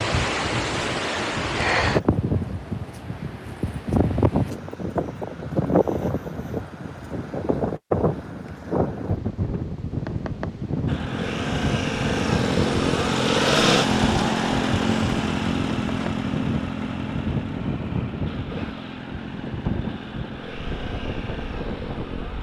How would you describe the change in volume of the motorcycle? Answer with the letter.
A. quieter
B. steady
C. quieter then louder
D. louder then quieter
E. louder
A.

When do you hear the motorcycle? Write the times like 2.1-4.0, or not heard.
10.8-22.3.